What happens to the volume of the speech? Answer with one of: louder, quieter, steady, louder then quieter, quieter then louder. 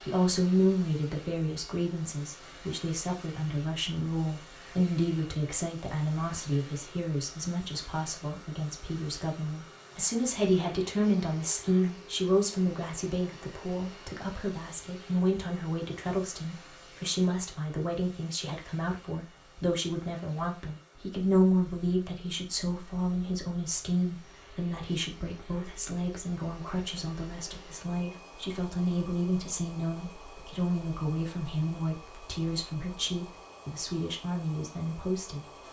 steady.